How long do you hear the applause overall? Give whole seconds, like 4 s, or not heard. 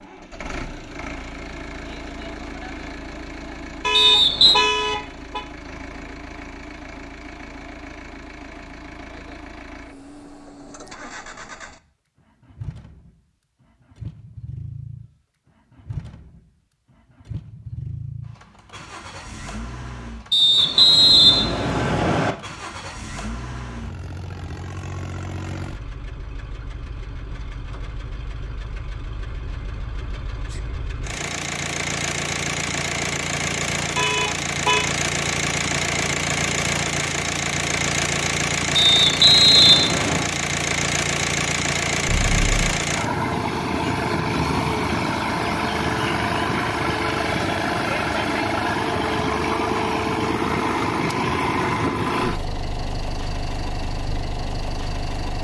not heard.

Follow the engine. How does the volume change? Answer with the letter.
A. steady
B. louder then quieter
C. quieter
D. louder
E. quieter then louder
D.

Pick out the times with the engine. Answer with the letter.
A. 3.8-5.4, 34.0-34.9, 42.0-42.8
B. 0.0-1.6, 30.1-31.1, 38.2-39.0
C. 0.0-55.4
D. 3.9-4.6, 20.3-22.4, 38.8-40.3
C.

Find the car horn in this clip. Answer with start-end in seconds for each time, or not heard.
3.8-5.4, 34.0-34.9, 42.0-42.8.